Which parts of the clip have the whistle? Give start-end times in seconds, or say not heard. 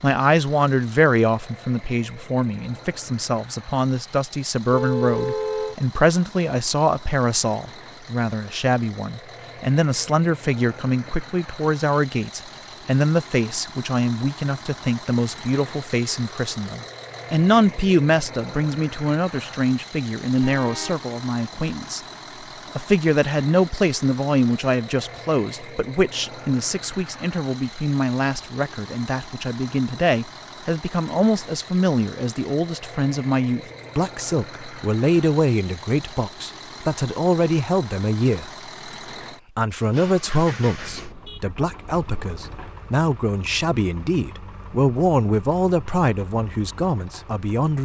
not heard.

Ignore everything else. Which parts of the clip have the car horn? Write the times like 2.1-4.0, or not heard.
4.7-5.8, 20.4-21.1, 40.7-42.7.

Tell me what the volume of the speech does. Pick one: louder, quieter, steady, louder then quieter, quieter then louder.
steady.